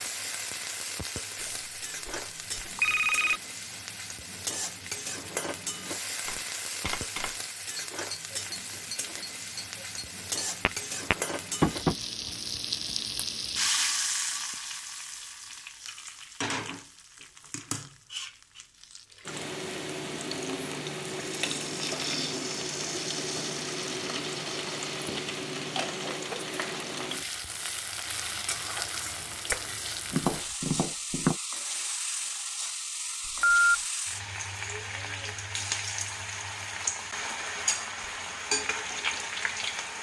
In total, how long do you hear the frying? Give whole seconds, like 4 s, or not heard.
40 s.